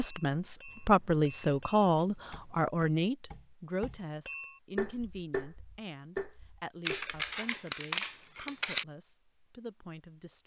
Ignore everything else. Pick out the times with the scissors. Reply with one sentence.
You can hear the scissors from 0.7 to 2.6 s and from 6.8 to 8.8 s.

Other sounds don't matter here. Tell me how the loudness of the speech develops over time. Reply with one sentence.
The volume of the speech goes down.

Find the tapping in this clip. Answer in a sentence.
You can hear the tapping from 0.0 to 7.6 s.